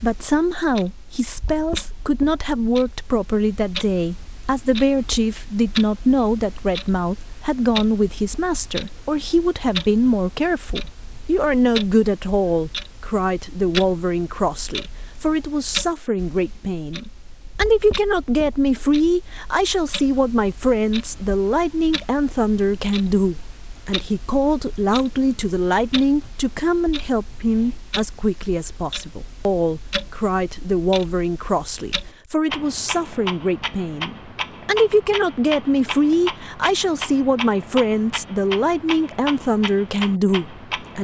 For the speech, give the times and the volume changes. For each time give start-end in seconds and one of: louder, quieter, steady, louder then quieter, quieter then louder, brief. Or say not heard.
0.0-41.0 steady.